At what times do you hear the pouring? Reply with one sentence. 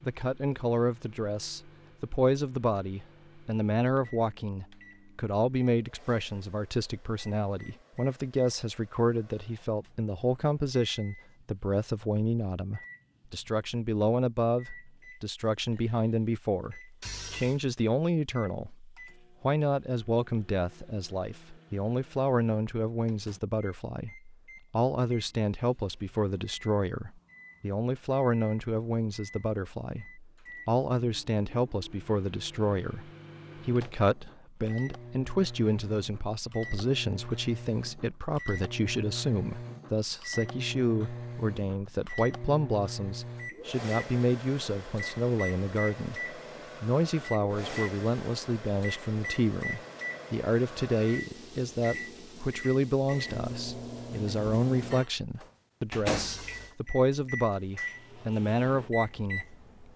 You can hear the pouring from 17.0 to 17.6 s and from 56.0 to 56.8 s.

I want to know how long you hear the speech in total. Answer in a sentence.
You can hear the speech for 60 seconds altogether.